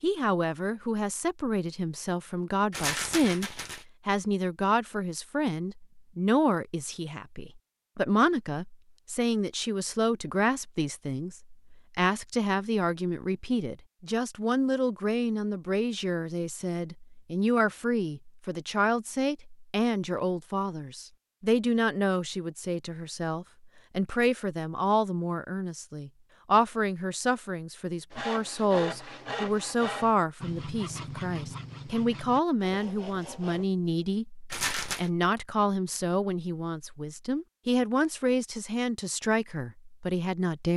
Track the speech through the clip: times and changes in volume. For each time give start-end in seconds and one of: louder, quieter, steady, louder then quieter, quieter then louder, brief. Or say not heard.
0.0-40.7 steady.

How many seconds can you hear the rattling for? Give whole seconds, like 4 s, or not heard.
2 s.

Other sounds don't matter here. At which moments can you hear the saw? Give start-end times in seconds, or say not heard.
28.1-33.6.